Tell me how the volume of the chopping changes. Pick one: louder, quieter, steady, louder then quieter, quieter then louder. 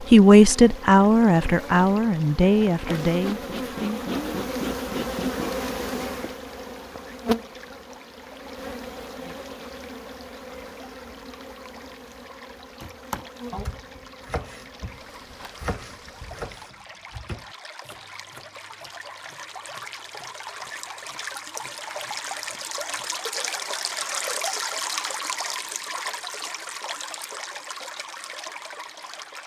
quieter.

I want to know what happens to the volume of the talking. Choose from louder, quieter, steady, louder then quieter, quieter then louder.
quieter.